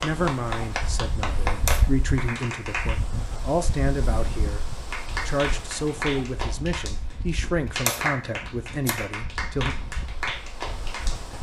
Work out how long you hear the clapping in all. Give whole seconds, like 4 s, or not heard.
9 s.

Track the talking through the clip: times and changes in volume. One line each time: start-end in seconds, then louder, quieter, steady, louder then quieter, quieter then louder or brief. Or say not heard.
0.0-9.8 steady.